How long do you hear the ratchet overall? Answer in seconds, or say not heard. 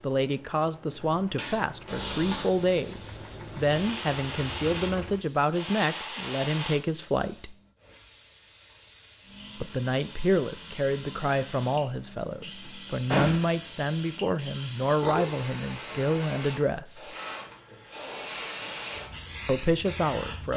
not heard.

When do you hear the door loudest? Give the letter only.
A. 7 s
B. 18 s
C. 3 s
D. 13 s
D.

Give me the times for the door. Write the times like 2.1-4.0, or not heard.
1.9-2.5, 12.7-13.6.